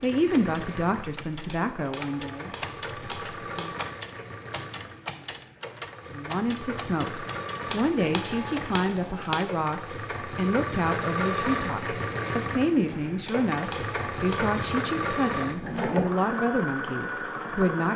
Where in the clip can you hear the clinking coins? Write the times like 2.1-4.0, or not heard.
not heard.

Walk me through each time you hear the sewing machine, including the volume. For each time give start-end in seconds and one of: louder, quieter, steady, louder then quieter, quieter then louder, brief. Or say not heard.
0.0-17.9 louder.